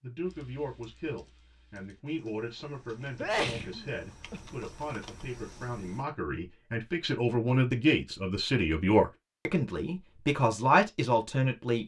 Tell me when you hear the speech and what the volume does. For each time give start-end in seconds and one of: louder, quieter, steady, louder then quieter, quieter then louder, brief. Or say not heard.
0.0-11.8 louder.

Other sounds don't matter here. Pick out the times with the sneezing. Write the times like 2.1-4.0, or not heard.
3.1-4.5.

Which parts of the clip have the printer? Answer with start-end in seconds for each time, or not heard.
not heard.